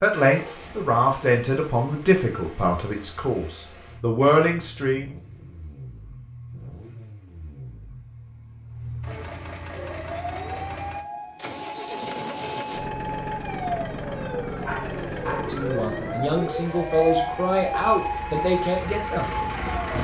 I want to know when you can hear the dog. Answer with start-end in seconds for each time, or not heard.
14.6-15.6.